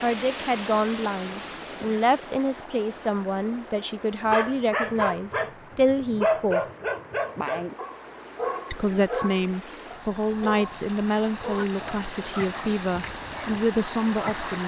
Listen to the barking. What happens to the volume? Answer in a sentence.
The volume of the barking goes down.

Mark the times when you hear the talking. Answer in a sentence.
The talking can be heard from 0.0 to 6.6 s and from 8.7 to 14.6 s.